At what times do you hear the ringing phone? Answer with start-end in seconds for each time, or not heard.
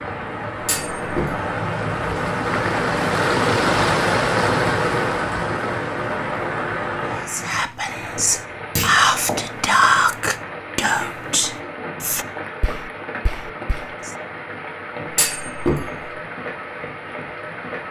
not heard.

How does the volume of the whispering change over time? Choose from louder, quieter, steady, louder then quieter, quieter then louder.
louder then quieter.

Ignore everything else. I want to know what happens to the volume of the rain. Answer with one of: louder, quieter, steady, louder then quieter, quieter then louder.
quieter.